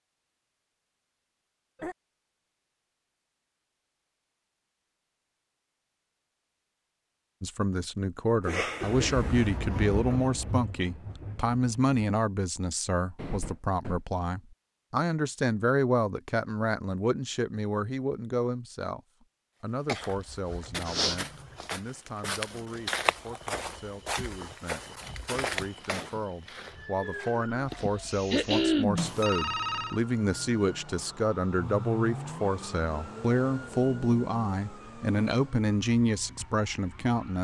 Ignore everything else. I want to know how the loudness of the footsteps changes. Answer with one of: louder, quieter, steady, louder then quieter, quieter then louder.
quieter.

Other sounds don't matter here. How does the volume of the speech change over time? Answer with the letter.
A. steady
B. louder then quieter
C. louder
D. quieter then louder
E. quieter
D.